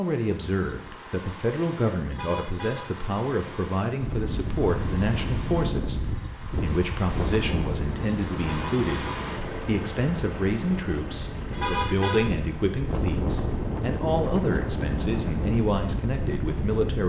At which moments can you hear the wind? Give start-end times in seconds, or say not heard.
4.0-17.0.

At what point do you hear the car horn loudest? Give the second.
12 s.